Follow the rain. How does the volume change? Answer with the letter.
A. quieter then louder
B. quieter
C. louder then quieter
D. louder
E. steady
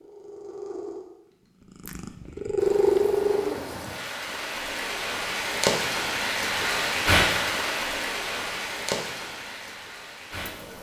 C.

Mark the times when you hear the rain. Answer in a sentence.
The rain can be heard from 2.5 to 10.7 s.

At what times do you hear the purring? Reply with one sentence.
You can hear the purring from 0.0 to 3.6 s.